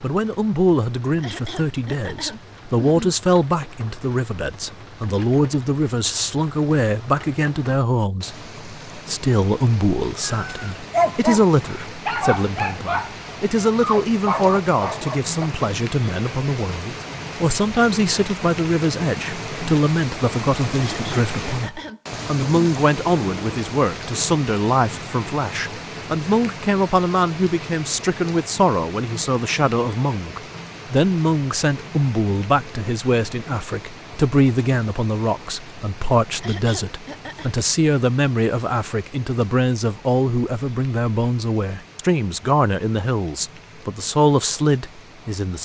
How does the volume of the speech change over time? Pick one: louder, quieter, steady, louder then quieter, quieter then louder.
steady.